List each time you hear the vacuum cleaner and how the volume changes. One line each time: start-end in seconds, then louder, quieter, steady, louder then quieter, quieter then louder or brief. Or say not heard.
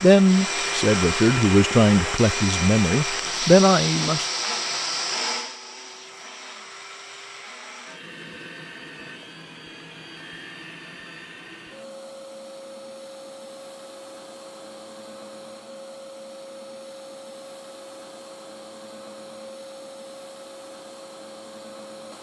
0.0-22.1 quieter.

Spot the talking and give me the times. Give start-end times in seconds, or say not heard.
0.0-4.2.